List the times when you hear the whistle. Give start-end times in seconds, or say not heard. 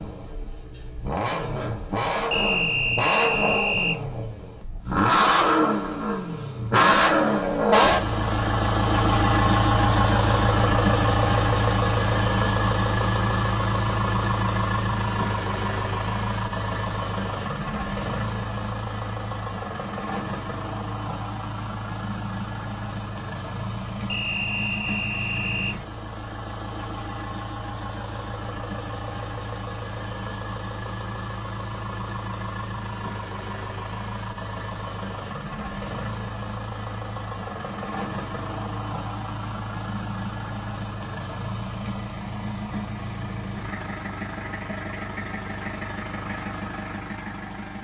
2.3-4.0, 24.1-25.8.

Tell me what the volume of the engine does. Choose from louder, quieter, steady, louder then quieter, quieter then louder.
quieter.